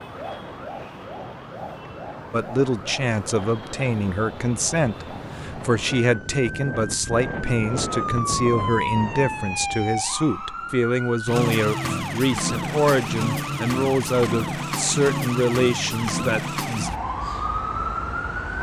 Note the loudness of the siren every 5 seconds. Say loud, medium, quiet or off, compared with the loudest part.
medium, loud, loud, loud.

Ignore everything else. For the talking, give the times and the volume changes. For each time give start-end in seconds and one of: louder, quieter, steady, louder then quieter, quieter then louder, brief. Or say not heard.
2.3-16.9 steady.